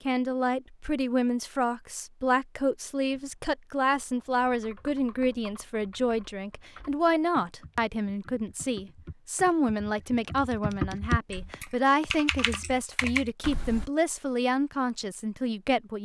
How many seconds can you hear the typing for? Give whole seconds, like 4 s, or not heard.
11 s.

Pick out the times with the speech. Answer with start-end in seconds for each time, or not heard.
0.1-15.9.